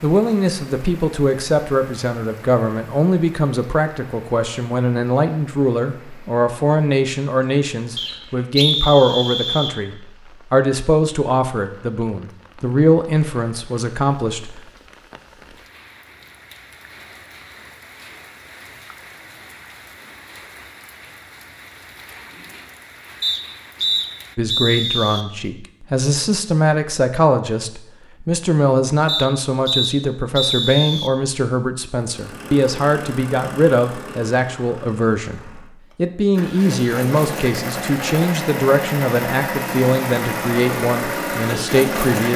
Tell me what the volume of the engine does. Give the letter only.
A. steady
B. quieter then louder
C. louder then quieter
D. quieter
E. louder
B.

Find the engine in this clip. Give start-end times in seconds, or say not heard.
32.0-42.3.